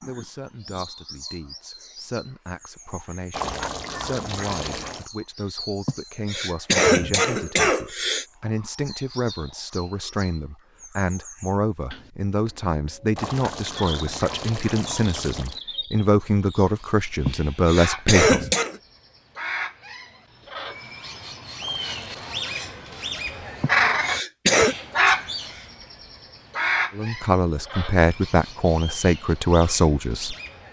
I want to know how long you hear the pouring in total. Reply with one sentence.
The pouring can be heard for 5 seconds in total.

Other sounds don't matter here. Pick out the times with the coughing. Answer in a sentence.
The coughing can be heard from 5.8 to 8.2 s, from 17.2 to 18.8 s and from 23.6 to 24.8 s.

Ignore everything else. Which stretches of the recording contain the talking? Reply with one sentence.
The talking can be heard from 0.1 to 18.4 s and from 26.9 to 30.4 s.